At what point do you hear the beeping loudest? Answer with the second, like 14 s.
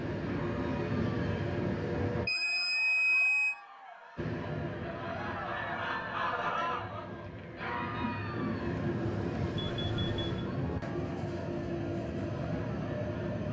3 s.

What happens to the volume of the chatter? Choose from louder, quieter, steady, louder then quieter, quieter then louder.
louder then quieter.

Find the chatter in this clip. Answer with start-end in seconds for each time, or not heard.
0.2-13.4.